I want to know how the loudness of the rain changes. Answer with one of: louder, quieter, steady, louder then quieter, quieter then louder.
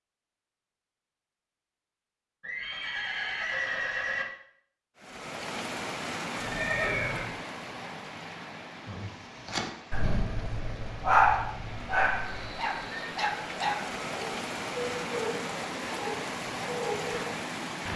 quieter then louder.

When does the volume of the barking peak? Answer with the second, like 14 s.
11 s.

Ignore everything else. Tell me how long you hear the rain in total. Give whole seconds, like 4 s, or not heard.
13 s.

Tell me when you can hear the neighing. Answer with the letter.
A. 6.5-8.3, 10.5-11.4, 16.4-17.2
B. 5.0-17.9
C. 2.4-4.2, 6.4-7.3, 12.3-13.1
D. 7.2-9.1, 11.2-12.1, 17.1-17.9
C.